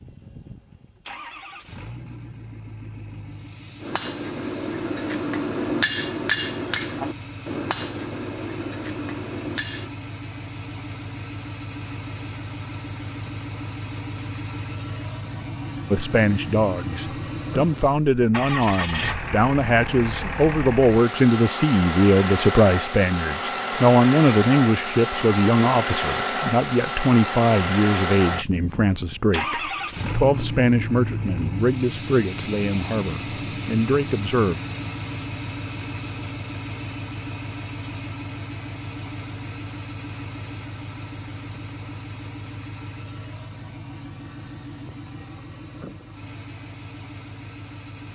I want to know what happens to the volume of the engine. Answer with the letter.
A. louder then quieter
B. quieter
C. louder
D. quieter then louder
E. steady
A.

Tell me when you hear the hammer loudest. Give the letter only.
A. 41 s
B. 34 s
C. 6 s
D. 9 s
C.